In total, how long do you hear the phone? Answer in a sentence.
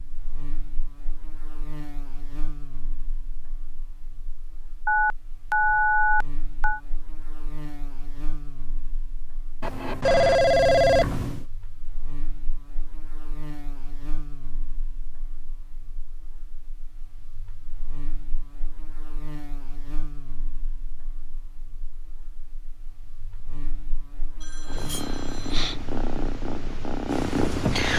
The phone can be heard for 5 seconds in total.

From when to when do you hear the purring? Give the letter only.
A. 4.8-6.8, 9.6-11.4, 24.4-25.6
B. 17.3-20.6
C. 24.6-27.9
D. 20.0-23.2
C.